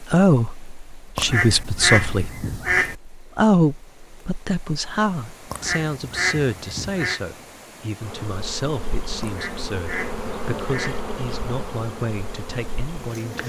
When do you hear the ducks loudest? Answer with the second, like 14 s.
2 s.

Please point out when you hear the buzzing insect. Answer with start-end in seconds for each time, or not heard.
8.0-13.4.